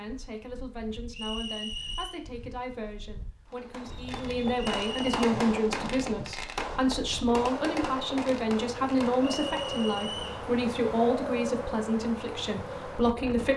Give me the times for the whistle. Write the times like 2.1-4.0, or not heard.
1.1-2.2, 4.5-5.0, 9.2-10.4.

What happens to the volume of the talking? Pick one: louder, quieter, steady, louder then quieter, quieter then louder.
louder.